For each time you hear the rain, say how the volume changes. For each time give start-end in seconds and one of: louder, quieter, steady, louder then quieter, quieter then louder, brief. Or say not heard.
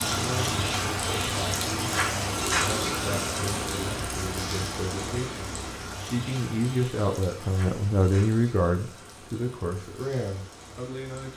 0.0-11.3 quieter.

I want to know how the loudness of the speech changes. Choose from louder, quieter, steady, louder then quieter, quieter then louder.
louder then quieter.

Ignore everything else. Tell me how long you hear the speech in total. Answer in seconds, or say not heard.
11 s.